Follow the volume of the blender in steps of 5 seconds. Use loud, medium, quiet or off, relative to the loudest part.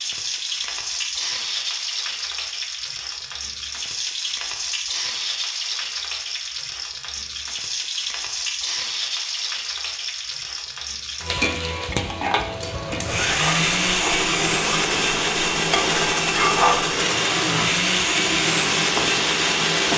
off, off, loud, loud.